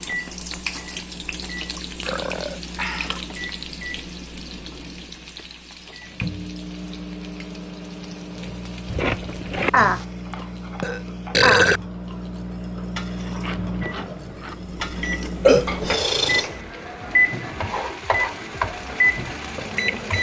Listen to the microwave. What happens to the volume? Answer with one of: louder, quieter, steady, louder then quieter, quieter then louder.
louder.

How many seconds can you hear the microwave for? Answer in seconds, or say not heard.
20 s.